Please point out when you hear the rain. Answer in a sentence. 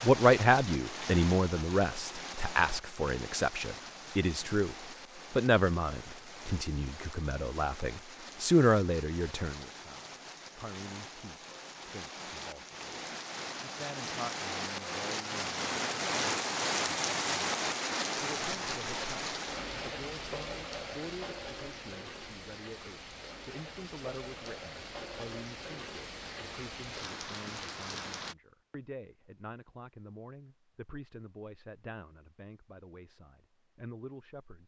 The rain can be heard from 0.0 to 28.4 s.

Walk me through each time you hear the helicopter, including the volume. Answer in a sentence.
The helicopter can't be heard in this clip.